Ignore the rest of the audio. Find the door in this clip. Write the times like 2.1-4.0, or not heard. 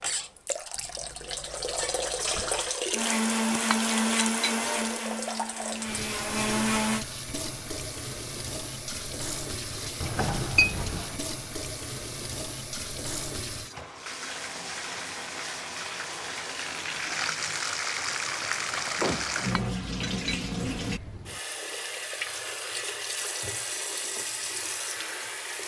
0.8-2.7, 10.0-11.2, 18.8-19.4.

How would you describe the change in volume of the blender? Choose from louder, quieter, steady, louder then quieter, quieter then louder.
quieter then louder.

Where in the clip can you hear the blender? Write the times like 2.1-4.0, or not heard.
2.9-7.0.